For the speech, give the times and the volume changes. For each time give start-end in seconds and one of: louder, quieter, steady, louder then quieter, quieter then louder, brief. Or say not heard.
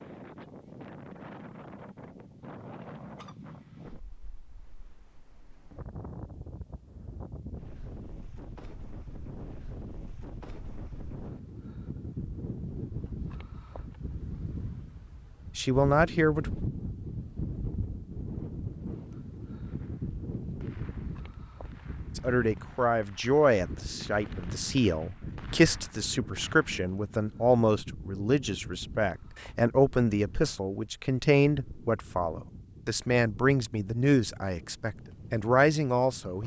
15.6-16.5 brief
22.1-36.4 steady.